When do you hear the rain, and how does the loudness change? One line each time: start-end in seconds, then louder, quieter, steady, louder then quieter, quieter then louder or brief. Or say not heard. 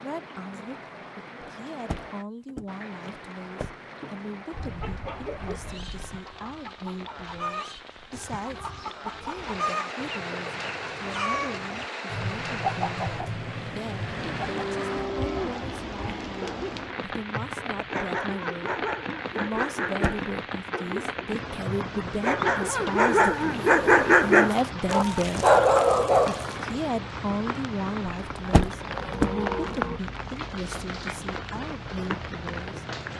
0.0-33.1 louder.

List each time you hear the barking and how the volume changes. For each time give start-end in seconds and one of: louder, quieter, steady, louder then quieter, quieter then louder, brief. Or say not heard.
16.4-26.6 louder.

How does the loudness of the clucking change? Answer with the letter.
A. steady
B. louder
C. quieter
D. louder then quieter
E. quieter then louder
B.